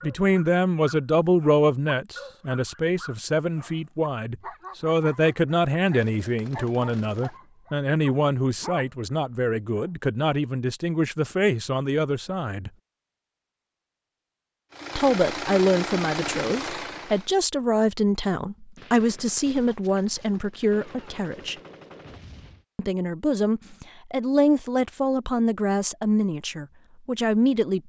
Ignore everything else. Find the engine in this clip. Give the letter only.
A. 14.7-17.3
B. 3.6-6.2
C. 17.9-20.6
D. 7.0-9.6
A.